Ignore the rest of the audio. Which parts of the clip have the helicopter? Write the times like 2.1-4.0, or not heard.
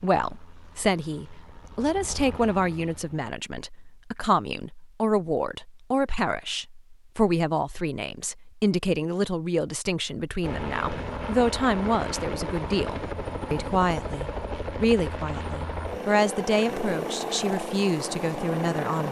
0.0-3.2, 10.4-19.0.